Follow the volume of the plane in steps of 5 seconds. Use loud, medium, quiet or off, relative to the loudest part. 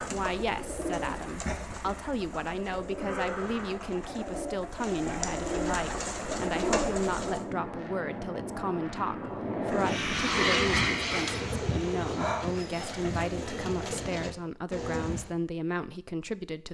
off, medium, loud, off.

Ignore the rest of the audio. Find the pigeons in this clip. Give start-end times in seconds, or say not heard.
0.0-7.5, 9.7-15.3.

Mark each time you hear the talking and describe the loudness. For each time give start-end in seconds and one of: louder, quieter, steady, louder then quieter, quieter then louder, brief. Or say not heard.
0.1-16.7 steady.